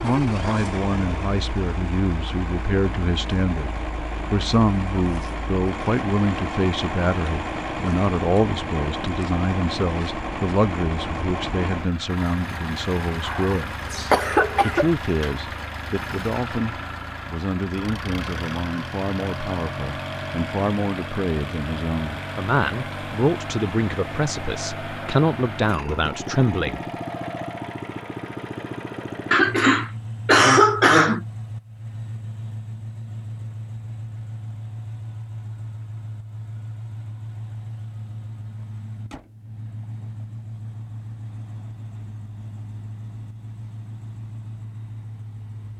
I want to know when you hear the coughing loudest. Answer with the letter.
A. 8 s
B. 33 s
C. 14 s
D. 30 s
D.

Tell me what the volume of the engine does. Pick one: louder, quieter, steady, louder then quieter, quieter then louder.
quieter.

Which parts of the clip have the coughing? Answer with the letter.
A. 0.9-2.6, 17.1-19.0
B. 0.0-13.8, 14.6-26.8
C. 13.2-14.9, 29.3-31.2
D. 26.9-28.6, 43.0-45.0
C.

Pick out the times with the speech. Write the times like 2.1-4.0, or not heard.
0.0-13.8, 14.6-26.8.